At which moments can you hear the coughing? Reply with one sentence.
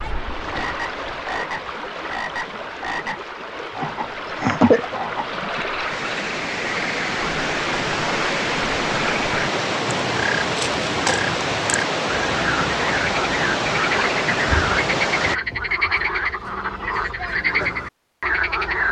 You can hear the coughing from 3.8 to 4.8 s.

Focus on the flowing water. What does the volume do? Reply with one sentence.
The volume of the flowing water goes up.